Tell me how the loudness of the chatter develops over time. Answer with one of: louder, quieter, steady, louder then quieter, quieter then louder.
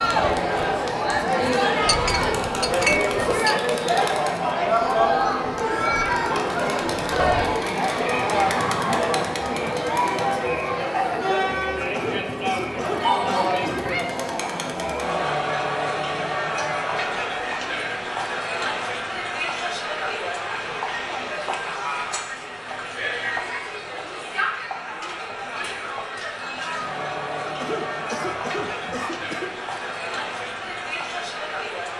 quieter.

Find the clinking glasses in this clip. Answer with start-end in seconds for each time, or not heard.
1.9-3.9.